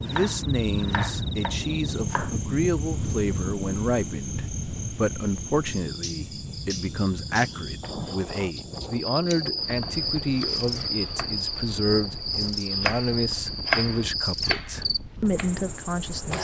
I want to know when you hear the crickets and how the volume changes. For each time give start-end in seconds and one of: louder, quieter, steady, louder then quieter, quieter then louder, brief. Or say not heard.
0.0-16.3 louder.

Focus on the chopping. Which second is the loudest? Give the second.
14 s.